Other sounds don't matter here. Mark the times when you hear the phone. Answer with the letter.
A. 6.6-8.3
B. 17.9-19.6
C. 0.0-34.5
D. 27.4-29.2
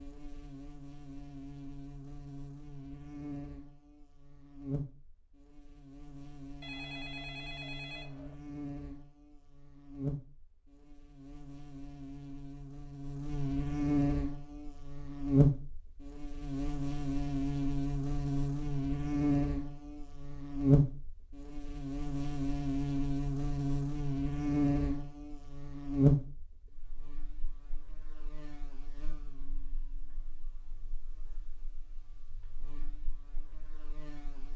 A.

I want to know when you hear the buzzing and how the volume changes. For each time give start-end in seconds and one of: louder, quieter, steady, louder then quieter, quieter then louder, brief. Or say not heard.
0.0-34.5 louder then quieter.